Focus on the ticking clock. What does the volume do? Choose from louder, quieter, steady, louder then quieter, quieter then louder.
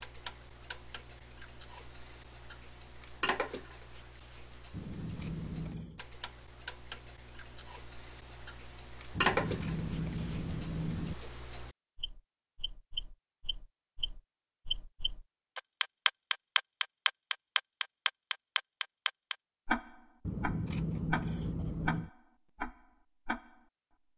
louder then quieter.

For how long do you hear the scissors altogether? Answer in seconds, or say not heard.
5 s.